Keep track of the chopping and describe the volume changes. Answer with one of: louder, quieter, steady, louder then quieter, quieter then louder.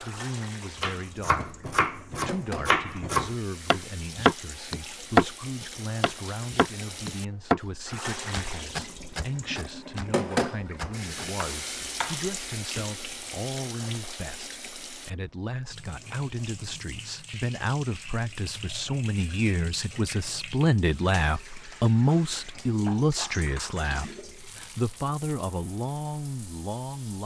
louder then quieter.